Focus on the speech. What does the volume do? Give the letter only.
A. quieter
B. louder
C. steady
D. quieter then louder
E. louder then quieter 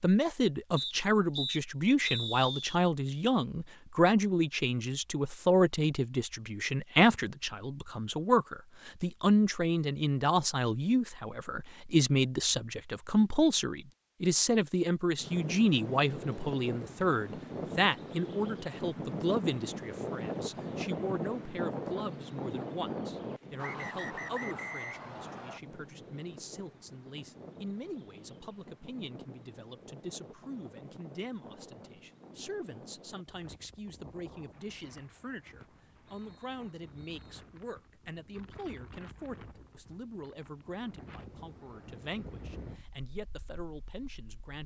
A.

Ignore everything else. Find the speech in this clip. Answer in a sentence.
The speech can be heard from 0.0 to 44.6 s.